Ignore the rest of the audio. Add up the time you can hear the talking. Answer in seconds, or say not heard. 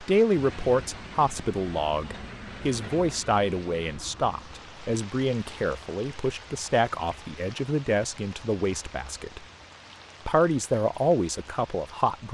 11 s.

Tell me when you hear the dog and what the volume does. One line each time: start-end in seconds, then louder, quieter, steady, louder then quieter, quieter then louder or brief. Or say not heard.
not heard.